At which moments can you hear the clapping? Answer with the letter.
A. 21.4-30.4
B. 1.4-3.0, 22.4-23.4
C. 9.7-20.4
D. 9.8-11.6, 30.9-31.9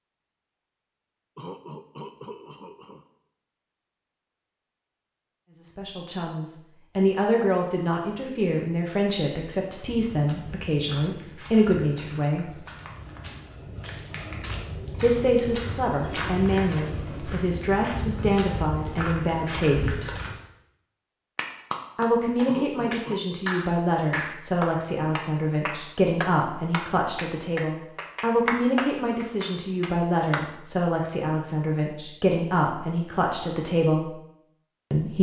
A.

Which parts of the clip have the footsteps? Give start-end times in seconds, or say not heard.
9.7-20.4.